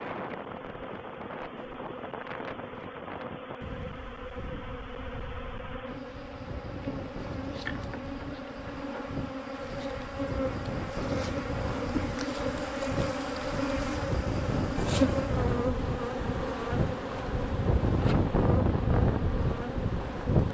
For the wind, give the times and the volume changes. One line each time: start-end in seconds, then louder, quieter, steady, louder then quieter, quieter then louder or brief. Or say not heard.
0.0-20.5 louder.